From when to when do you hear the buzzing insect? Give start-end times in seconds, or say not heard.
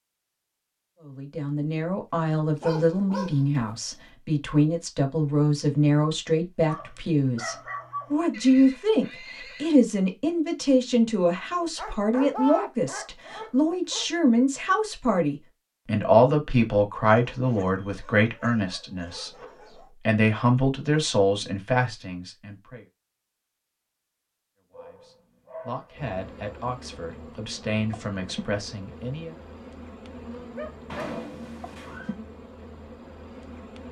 25.9-33.8.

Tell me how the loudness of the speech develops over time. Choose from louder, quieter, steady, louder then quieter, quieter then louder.
quieter.